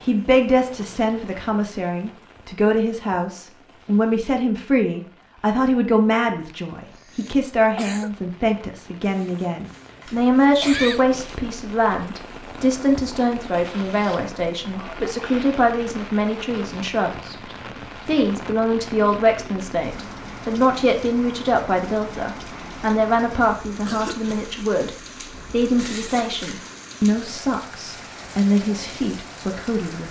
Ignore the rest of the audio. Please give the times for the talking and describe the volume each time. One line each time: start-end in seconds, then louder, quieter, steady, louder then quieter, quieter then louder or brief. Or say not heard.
0.0-30.0 steady.